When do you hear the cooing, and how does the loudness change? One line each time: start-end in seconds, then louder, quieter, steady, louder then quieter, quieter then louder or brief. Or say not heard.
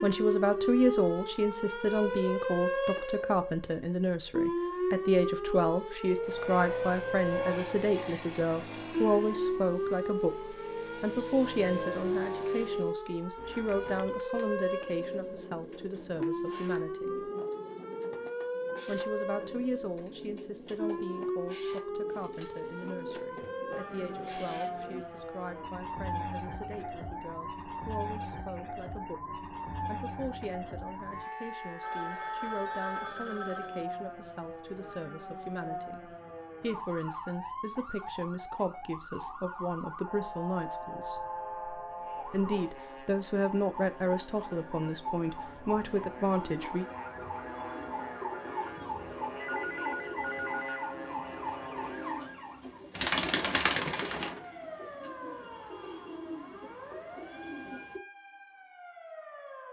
13.3-25.1 steady
46.3-58.0 louder then quieter.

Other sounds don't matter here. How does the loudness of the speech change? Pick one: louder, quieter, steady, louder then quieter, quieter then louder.
quieter then louder.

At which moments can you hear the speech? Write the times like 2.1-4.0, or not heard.
0.0-17.3, 18.9-41.2, 42.2-46.9.